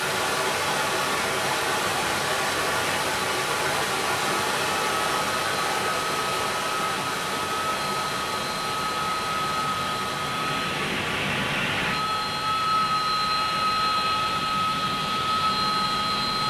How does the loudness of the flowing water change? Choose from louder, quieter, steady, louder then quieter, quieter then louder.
quieter.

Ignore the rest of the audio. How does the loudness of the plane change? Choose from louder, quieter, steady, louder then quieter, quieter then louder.
louder.